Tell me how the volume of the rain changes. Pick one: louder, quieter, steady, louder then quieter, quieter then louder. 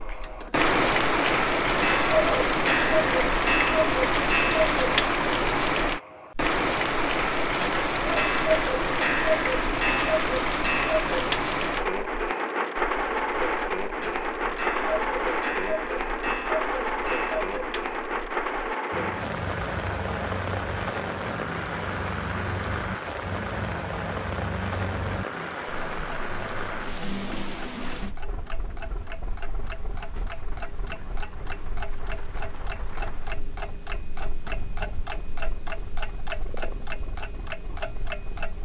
quieter.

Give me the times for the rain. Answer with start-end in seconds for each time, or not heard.
0.0-38.6.